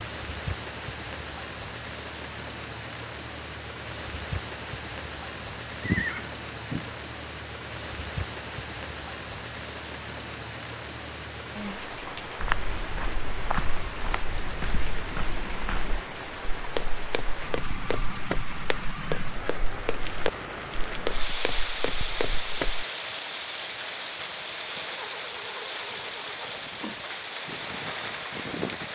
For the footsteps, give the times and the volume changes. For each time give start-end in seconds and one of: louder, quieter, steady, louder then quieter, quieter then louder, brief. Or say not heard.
12.4-22.9 steady.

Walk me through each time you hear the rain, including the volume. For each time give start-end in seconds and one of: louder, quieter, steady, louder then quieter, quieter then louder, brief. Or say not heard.
0.0-28.8 steady.